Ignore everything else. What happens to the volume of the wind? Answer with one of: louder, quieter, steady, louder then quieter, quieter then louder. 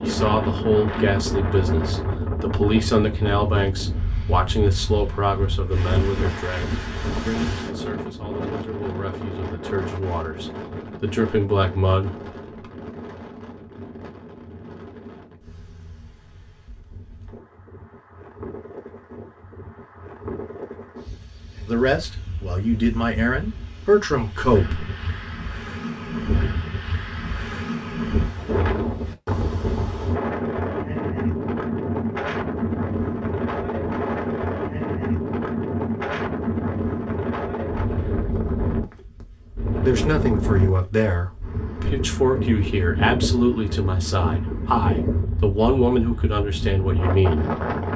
quieter then louder.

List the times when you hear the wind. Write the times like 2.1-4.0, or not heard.
0.0-47.9.